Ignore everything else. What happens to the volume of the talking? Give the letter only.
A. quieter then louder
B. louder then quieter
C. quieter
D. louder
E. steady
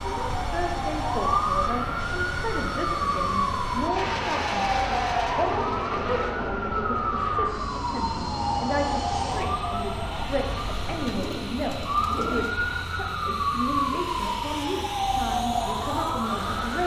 E.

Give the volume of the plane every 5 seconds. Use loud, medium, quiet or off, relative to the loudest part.
loud, loud, medium, loud.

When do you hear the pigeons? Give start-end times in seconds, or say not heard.
11.0-12.6.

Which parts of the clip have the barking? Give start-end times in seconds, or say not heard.
not heard.